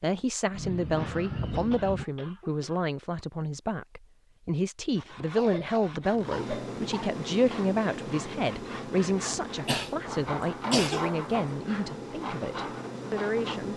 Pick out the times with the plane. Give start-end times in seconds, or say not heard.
6.1-13.7.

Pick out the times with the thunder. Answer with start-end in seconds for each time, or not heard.
0.5-2.0.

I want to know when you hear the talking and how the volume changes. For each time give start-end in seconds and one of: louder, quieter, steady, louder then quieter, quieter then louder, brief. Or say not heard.
0.0-13.7 steady.